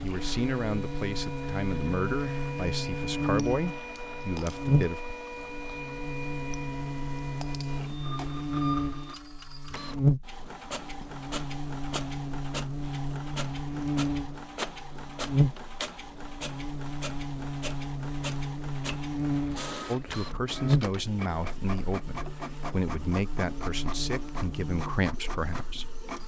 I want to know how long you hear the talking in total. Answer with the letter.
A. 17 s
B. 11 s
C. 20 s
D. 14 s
B.